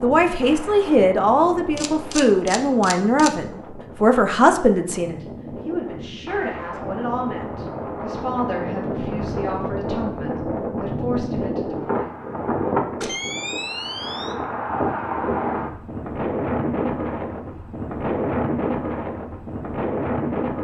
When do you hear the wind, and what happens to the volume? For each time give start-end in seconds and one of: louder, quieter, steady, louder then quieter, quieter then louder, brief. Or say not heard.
0.0-20.5 louder.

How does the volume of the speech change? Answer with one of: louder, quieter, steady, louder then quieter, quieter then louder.
quieter.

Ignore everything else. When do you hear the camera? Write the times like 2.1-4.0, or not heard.
1.8-3.3, 13.0-14.3.